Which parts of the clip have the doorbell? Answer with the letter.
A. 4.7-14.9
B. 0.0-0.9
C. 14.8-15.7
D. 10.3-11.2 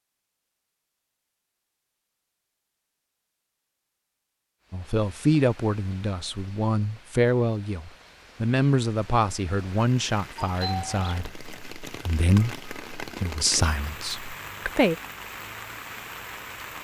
D.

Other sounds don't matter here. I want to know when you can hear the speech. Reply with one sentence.
You can hear the speech from 4.7 to 14.9 s.